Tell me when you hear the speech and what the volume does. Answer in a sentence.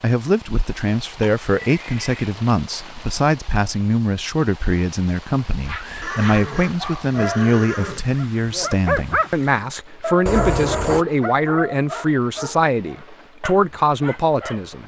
The speech can be heard from 0.0 to 14.8 s, at a steady volume.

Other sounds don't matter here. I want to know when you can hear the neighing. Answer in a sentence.
You can hear the neighing from 1.2 to 2.4 s, from 6.0 to 8.1 s and from 10.2 to 11.1 s.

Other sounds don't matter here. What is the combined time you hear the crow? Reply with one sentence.
You can't hear the crow here.